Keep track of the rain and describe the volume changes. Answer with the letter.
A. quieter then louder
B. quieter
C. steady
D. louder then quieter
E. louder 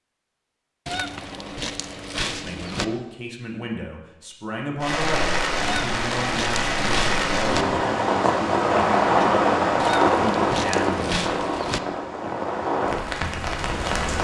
D.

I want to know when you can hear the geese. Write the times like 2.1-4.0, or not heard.
0.8-2.9, 5.6-7.7, 9.8-11.8.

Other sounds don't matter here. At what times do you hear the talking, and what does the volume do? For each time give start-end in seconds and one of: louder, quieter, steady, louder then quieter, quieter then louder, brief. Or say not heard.
2.2-11.1 steady.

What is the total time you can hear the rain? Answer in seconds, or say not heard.
9 s.